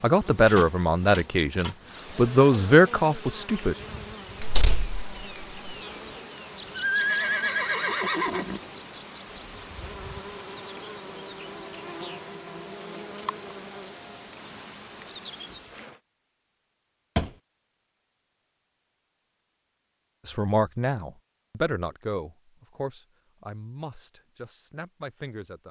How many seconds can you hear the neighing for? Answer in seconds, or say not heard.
2 s.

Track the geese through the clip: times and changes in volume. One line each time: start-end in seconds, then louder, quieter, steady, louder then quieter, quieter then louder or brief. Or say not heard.
not heard.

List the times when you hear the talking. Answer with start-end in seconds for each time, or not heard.
0.0-3.8, 20.2-25.6.